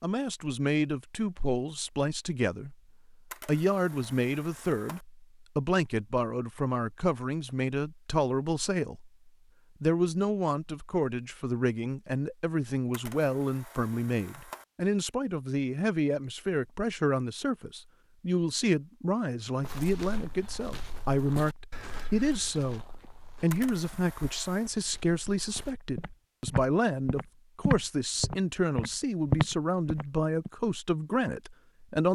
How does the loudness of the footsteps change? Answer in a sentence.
The volume of the footsteps goes down, then up.